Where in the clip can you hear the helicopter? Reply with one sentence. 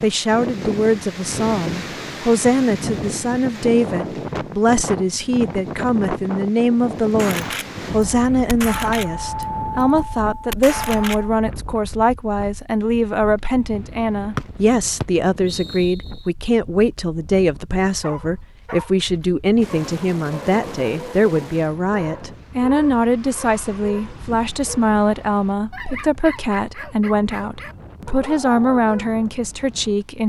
You can't hear the helicopter here.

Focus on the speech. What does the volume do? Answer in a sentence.
The loudness of the speech stays about the same.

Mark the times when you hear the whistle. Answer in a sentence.
You can hear the whistle from 14.3 to 16.2 s.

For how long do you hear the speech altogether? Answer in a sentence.
The speech can be heard for 30 seconds in total.